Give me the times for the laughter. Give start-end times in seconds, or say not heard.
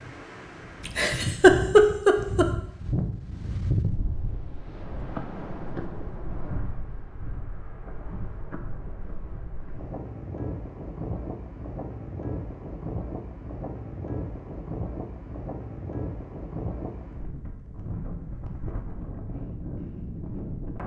0.8-2.5.